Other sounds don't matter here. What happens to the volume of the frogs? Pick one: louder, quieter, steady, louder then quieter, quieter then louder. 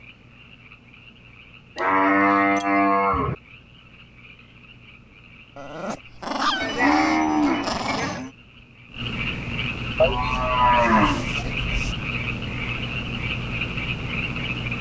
louder.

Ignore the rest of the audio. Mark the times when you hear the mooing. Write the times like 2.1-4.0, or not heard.
1.8-3.4, 6.6-8.3, 10.0-11.9.